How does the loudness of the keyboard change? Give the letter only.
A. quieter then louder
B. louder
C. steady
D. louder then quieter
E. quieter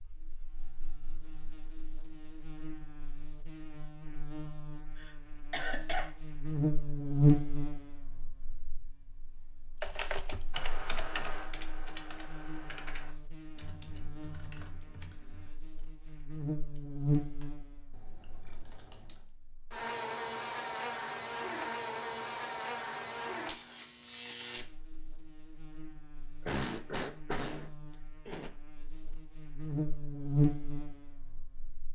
A.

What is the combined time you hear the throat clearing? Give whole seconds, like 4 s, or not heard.
3 s.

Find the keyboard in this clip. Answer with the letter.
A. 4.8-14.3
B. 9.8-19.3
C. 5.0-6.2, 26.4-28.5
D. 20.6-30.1
B.